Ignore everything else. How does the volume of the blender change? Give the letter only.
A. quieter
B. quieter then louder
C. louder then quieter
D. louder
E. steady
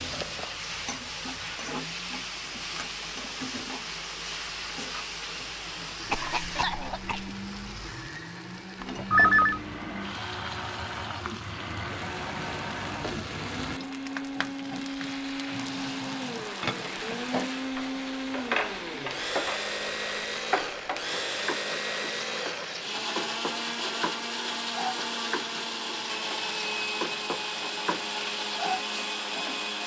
D.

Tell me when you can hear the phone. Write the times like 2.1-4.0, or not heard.
8.8-9.6.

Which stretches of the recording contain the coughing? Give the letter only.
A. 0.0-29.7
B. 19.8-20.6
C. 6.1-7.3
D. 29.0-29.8
C.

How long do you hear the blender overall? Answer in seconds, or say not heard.
30 s.